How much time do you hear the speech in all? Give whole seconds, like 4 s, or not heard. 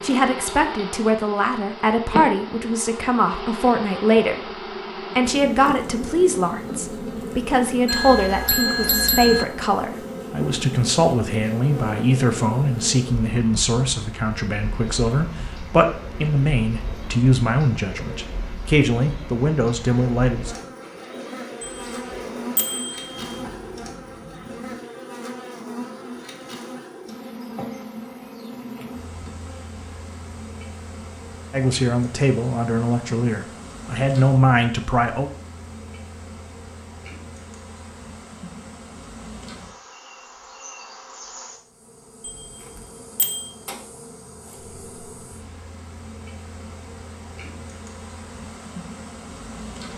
24 s.